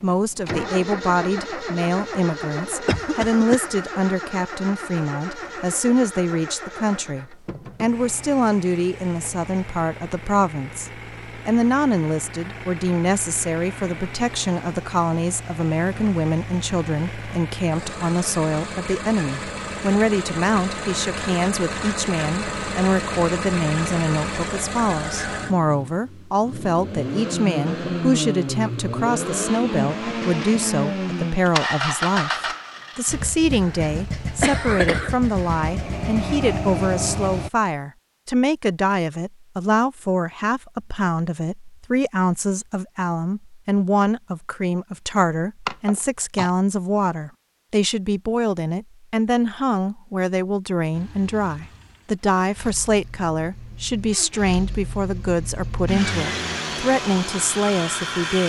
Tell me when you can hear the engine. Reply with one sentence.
The engine can be heard from 0.0 to 37.5 s and from 50.9 to 58.4 s.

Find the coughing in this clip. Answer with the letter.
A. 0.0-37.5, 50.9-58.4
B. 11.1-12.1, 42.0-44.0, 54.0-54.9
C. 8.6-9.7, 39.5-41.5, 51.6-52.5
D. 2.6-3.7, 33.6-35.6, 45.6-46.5
D.